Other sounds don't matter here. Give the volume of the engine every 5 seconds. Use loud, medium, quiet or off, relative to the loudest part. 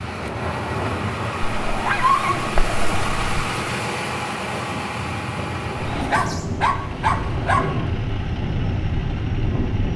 loud, medium.